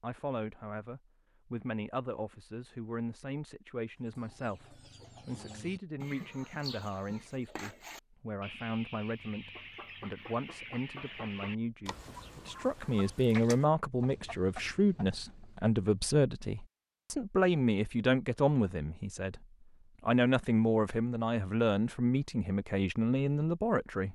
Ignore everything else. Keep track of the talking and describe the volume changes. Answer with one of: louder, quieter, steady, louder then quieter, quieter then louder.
louder.